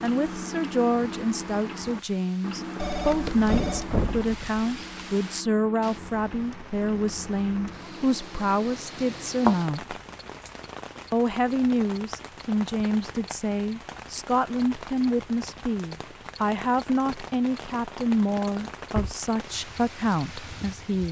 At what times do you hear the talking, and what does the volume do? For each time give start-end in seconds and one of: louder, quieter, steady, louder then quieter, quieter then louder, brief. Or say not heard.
0.0-9.9 steady
11.1-21.0 steady.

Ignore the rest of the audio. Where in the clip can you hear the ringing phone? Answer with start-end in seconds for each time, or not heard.
2.8-3.9.